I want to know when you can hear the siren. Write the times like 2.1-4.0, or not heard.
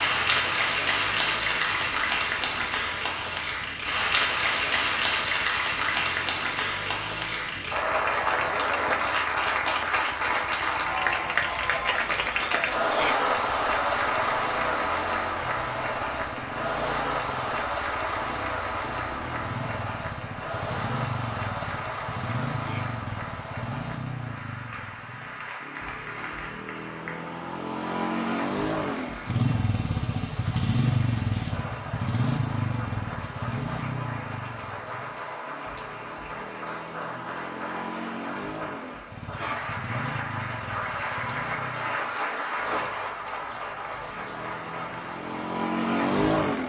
not heard.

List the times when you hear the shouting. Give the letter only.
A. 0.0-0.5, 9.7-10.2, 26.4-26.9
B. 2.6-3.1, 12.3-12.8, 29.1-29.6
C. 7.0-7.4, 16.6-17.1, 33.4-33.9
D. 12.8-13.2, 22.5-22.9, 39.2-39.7
D.